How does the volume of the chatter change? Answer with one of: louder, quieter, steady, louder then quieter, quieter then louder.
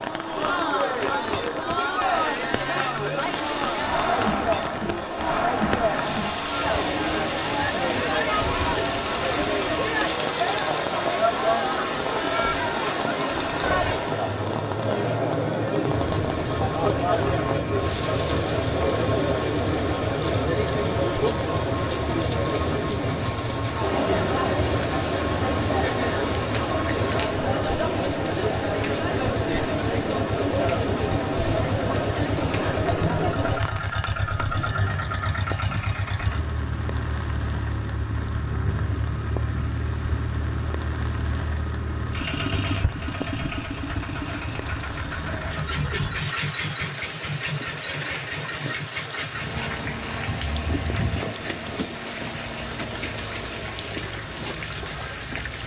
steady.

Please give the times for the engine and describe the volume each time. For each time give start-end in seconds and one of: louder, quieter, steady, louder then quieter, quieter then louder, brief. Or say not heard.
0.0-55.6 steady.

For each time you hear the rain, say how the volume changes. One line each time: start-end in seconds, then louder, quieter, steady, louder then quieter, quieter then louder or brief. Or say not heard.
0.0-55.6 steady.